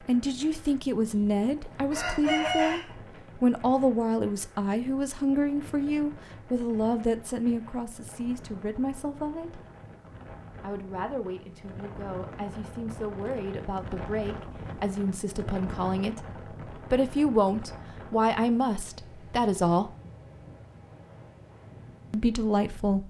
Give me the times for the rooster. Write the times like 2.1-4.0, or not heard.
1.1-3.0.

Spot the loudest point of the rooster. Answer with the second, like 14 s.
2 s.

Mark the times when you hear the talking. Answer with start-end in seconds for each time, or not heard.
0.1-9.6, 10.6-16.2, 16.9-19.9, 22.1-23.0.